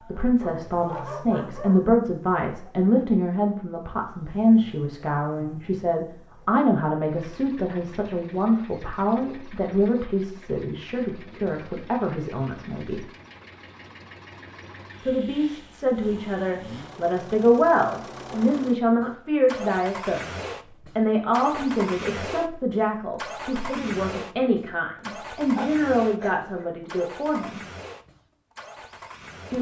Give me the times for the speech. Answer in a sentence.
You can hear the speech from 0.1 to 13.0 s and from 15.1 to 27.6 s.